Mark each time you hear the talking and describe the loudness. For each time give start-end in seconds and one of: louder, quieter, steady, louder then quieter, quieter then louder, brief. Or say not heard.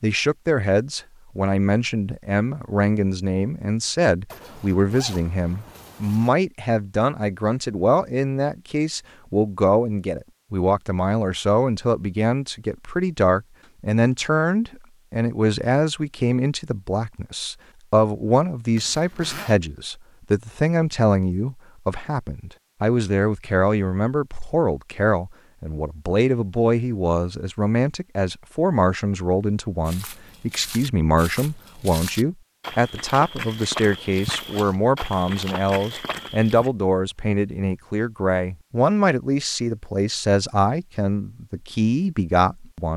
0.0-42.9 steady.